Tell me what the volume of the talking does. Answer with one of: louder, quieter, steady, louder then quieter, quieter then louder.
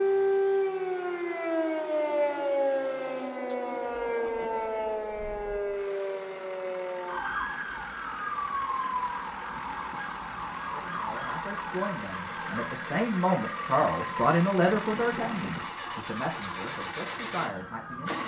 louder then quieter.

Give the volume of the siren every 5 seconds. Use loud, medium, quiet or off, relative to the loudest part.
loud, medium, medium, quiet.